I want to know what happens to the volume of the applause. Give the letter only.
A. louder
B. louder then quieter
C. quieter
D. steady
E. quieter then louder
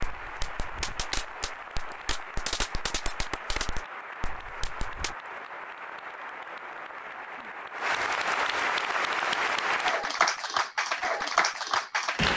A.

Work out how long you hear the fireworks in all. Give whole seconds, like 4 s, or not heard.
5 s.